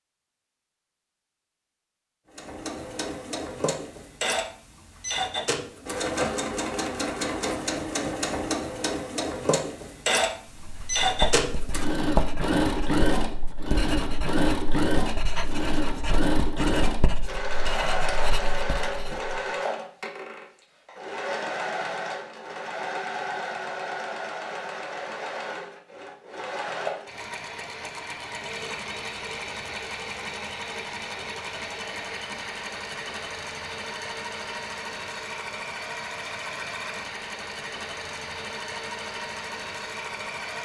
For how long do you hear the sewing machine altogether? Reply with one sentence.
The sewing machine can be heard for 38 seconds in total.